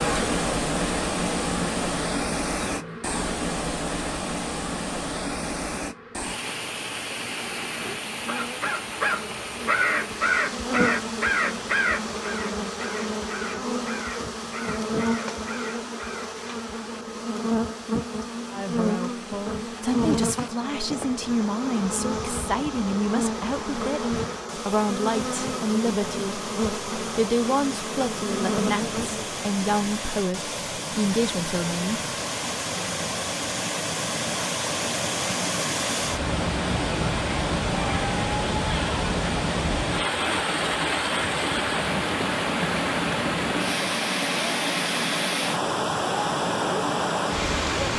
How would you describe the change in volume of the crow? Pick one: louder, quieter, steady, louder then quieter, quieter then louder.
quieter.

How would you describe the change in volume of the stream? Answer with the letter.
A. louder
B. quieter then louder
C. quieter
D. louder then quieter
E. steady
B.